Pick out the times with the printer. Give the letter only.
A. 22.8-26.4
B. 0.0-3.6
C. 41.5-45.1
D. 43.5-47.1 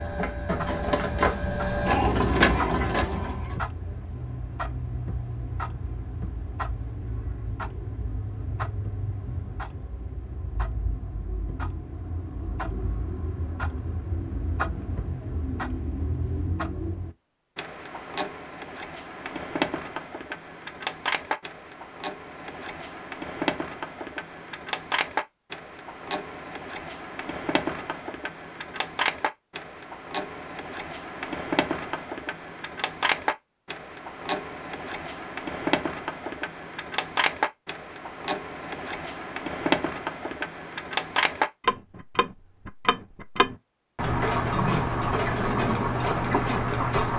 B.